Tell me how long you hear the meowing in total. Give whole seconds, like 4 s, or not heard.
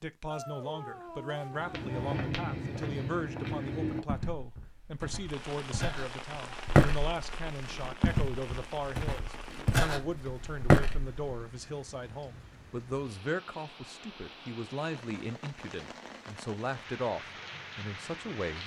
2 s.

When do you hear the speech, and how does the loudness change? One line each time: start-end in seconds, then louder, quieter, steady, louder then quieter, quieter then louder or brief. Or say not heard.
0.0-18.6 steady.